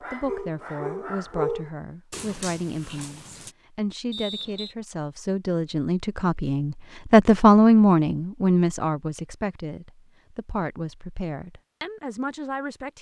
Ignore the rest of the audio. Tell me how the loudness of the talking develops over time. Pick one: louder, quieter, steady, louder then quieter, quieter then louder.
louder then quieter.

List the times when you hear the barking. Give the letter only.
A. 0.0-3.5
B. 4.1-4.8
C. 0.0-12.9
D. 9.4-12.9
A.